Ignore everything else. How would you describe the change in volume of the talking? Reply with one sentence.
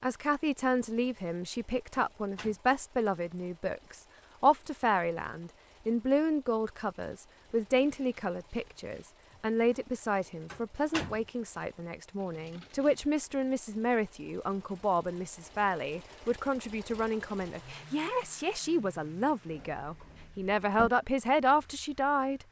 The volume of the talking stays about the same.